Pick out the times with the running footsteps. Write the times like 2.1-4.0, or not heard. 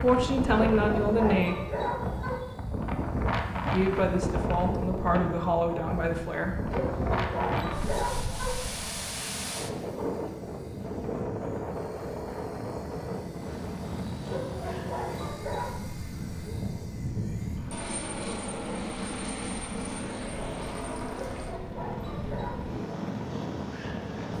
not heard.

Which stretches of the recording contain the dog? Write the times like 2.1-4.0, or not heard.
0.5-2.5, 6.7-8.7, 14.2-15.8, 21.1-22.6.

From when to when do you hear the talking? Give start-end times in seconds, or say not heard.
0.0-1.6, 3.7-6.7.